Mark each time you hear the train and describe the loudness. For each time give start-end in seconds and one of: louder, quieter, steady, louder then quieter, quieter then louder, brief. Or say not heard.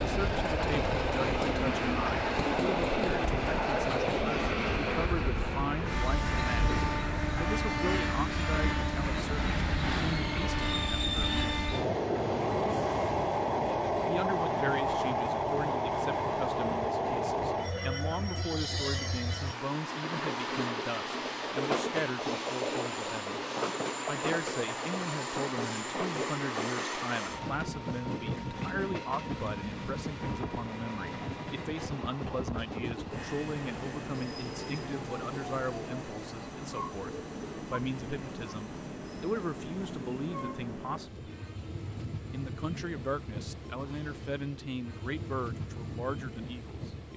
0.0-47.1 quieter.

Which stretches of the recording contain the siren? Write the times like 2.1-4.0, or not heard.
not heard.